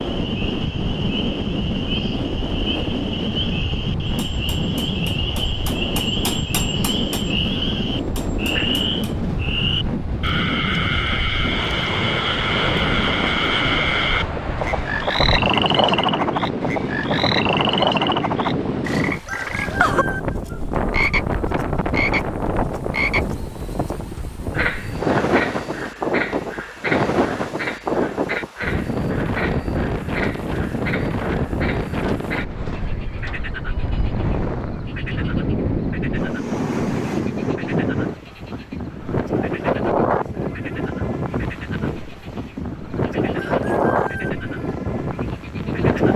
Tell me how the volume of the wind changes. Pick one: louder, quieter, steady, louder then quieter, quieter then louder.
steady.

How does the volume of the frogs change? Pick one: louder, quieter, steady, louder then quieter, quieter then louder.
louder then quieter.